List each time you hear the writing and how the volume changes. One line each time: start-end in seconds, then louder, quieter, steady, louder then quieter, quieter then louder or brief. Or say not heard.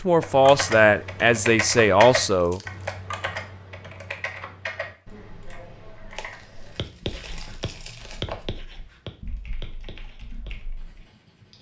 6.8-11.5 louder then quieter.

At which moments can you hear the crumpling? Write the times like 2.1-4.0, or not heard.
2.4-3.0, 6.2-8.4.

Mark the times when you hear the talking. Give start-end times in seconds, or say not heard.
0.0-2.6.